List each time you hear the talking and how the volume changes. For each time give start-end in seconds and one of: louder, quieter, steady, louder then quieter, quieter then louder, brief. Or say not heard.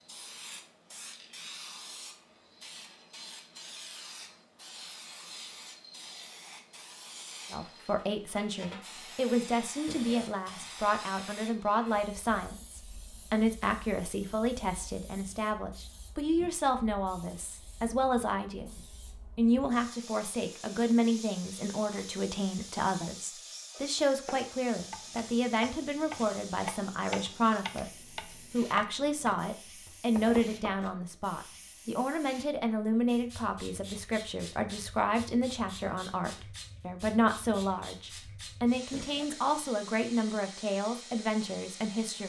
7.5-42.2 steady.